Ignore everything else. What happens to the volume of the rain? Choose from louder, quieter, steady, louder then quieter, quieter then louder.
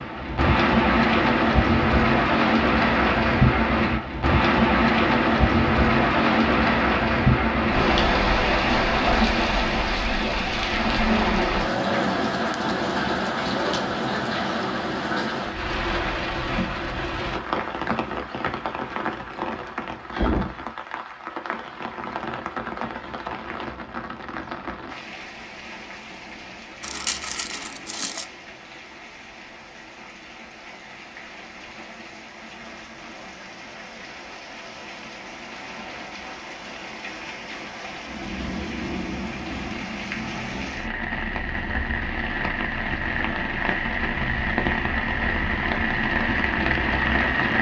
quieter then louder.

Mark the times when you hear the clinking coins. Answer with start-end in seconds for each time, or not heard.
26.8-28.2.